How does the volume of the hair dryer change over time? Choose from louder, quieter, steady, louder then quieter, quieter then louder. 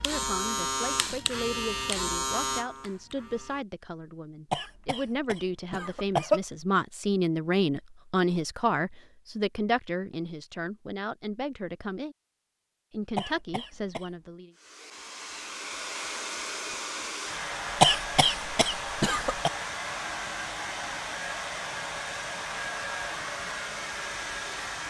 steady.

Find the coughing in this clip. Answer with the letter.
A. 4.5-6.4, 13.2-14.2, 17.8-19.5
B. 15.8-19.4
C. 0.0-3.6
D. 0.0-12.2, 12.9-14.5
A.